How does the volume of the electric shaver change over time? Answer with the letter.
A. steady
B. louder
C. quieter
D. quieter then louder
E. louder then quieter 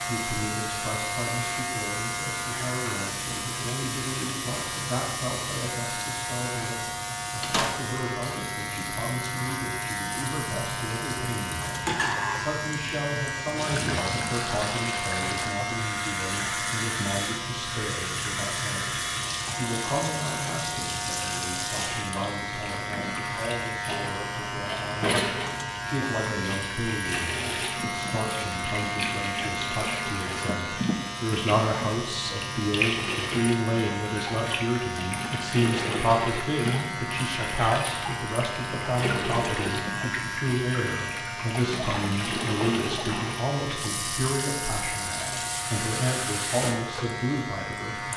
A.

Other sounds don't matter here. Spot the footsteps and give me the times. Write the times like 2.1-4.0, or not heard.
not heard.